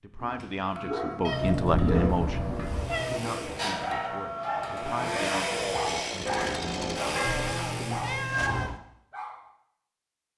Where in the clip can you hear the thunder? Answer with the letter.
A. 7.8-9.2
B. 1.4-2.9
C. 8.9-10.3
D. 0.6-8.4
B.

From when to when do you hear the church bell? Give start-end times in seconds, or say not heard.
0.6-8.4.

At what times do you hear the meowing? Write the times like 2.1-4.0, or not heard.
1.2-3.2, 7.2-8.8.